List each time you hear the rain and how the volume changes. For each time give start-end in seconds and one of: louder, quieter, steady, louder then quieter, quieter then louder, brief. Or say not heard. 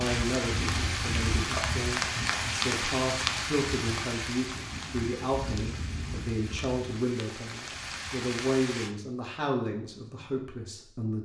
0.0-8.9 quieter.